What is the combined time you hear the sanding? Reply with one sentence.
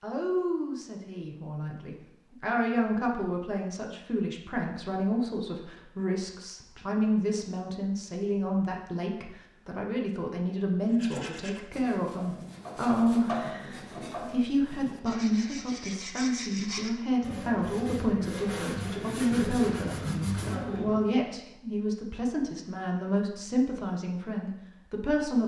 The sanding can be heard for 10 seconds in total.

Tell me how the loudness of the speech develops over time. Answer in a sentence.
The loudness of the speech stays about the same.